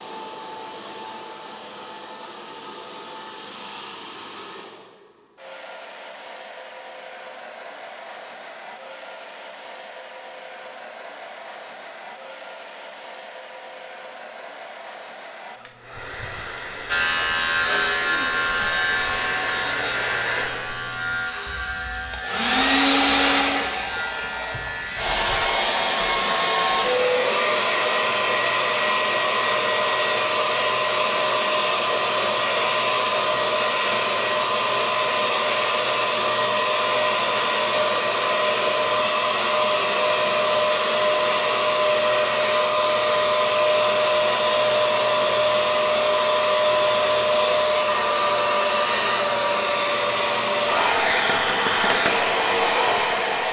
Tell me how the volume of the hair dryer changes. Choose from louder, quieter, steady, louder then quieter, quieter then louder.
louder.